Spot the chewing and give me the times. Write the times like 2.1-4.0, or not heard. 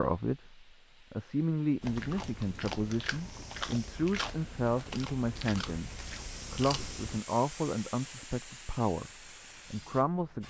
1.8-7.2.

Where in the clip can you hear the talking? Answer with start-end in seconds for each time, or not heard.
0.0-10.4.